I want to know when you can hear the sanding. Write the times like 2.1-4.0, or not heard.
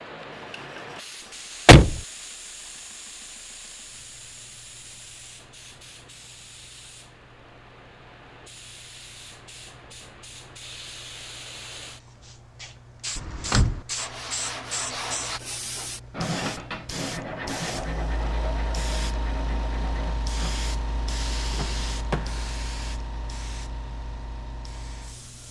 13.9-20.6.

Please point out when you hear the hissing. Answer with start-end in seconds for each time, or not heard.
0.0-25.4.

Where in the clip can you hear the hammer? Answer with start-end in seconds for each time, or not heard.
not heard.